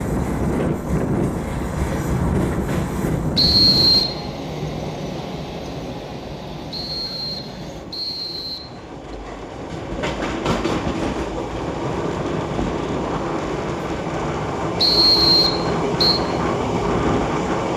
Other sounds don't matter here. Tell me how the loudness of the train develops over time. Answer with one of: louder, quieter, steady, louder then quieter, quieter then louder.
quieter then louder.